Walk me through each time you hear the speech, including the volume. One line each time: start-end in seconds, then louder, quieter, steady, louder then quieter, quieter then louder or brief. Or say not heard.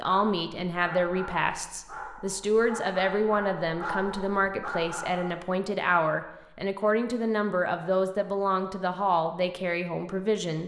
0.0-10.6 steady.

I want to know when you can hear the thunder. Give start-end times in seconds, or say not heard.
not heard.